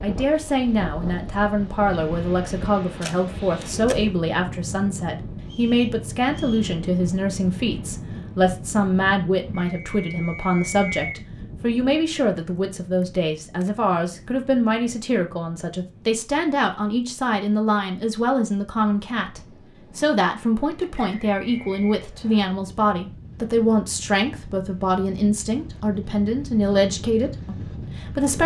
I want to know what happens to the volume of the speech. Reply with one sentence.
The loudness of the speech stays about the same.